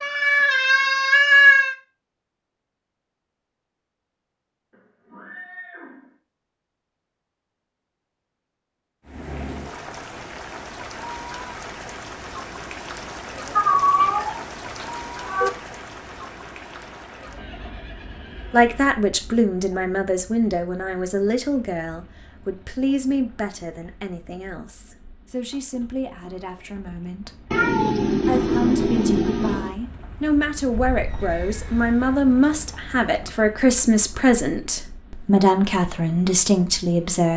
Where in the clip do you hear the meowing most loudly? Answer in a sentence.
The loudest moment of the meowing is at 1 second.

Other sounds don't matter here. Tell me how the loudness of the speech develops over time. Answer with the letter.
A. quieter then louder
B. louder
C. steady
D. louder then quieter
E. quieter
A.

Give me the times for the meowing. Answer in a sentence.
The meowing can be heard from 0.0 to 1.8 s, from 13.6 to 15.5 s and from 27.5 to 29.8 s.